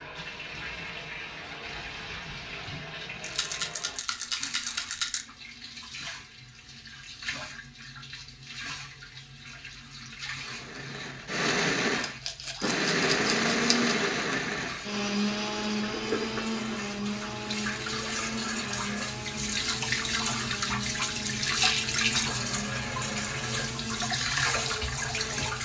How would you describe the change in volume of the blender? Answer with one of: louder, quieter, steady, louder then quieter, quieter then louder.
quieter.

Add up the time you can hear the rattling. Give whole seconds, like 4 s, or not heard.
5 s.